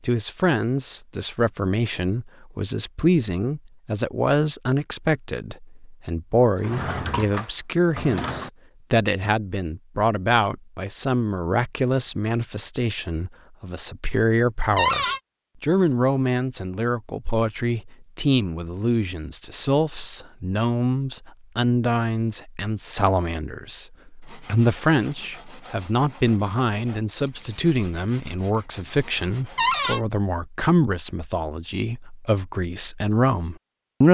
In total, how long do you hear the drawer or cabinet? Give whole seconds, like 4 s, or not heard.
3 s.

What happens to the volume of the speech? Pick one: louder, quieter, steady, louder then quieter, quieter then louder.
steady.